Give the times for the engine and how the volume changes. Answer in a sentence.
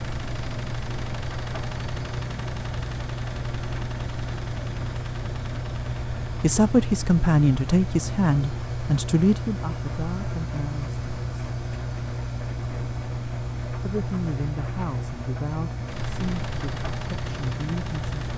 The engine can be heard from 0.0 to 18.3 s, at a steady volume.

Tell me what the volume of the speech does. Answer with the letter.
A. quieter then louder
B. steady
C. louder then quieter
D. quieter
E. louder
D.